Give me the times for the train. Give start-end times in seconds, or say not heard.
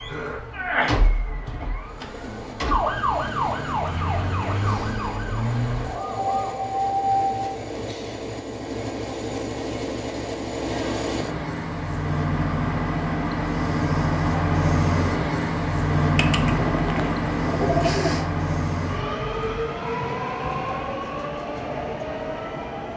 1.8-22.9.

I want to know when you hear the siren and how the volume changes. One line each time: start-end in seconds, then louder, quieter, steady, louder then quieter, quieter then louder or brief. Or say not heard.
0.0-7.4 steady.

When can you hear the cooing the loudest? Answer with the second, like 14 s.
18 s.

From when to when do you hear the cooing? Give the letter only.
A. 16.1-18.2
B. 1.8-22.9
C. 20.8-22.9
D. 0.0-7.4
A.